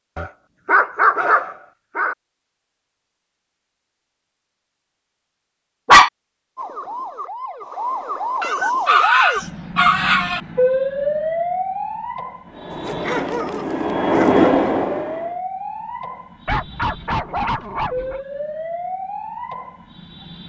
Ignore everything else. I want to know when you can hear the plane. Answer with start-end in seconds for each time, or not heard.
12.4-15.4.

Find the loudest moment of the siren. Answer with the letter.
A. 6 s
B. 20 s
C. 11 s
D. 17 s
C.